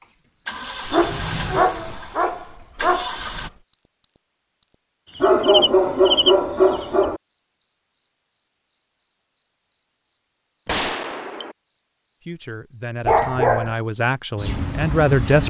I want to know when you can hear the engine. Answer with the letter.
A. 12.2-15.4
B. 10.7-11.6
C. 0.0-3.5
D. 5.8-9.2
C.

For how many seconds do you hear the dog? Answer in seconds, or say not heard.
5 s.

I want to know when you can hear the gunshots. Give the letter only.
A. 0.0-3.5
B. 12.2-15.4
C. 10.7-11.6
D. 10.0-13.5
C.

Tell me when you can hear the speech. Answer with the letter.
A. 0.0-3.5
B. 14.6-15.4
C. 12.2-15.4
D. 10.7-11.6
C.